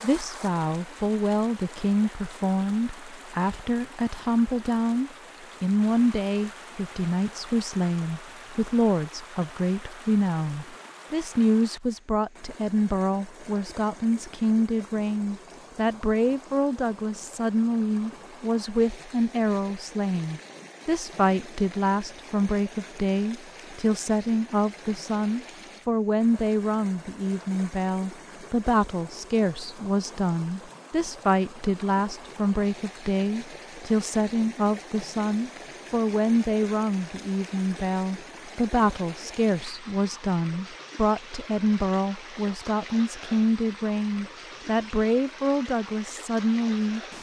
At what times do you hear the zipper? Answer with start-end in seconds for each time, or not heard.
not heard.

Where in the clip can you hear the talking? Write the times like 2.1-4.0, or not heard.
0.0-47.0.